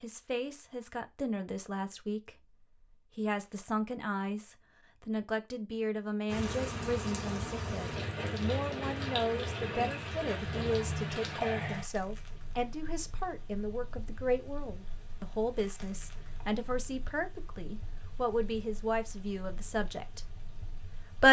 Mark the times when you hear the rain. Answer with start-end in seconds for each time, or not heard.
6.2-21.2.